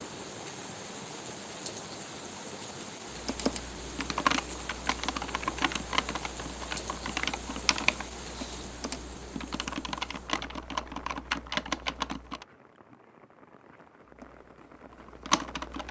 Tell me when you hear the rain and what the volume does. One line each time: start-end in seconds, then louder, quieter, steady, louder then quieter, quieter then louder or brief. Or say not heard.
0.0-15.8 quieter.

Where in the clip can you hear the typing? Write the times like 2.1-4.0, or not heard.
3.1-12.4, 14.2-15.8.